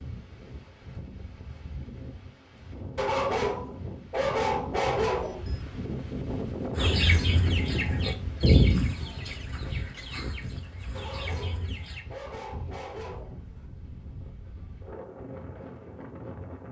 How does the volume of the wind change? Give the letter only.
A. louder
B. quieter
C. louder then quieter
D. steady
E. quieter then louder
C.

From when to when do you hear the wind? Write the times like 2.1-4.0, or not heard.
0.0-16.6.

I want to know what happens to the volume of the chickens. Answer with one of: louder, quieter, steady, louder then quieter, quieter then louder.
louder then quieter.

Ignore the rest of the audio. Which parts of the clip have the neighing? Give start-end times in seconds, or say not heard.
not heard.